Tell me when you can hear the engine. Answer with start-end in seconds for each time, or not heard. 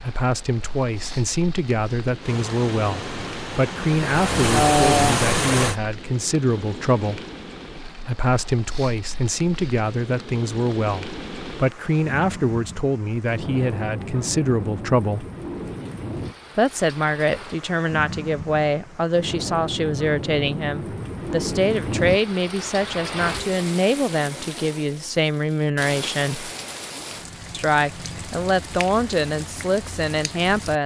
2.2-5.8.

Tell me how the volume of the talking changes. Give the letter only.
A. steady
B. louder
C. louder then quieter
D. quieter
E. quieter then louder
A.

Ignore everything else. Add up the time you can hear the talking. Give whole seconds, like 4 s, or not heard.
28 s.